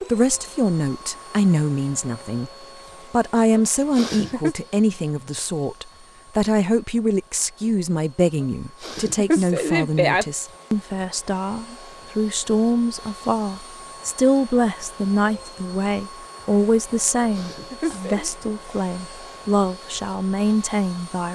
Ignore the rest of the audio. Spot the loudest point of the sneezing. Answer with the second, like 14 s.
10 s.